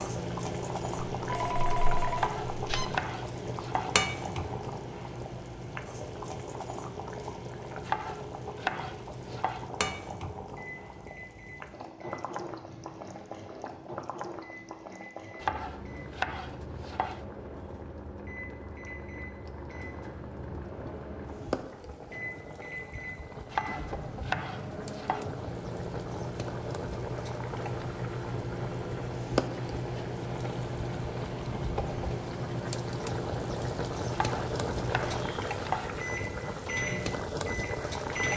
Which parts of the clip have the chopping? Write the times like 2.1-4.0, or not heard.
2.1-4.0, 7.8-9.7, 15.4-17.2, 23.5-25.2, 34.1-36.0.